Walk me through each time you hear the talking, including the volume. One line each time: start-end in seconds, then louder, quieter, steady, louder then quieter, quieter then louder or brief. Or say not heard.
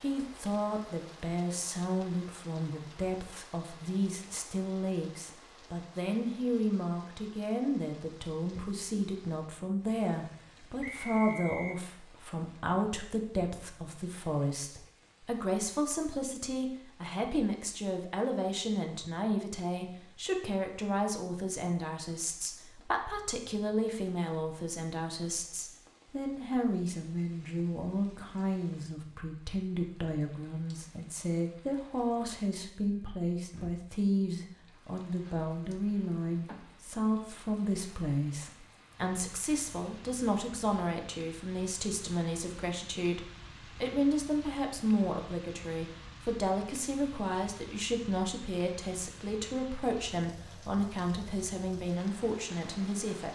0.0-53.2 steady.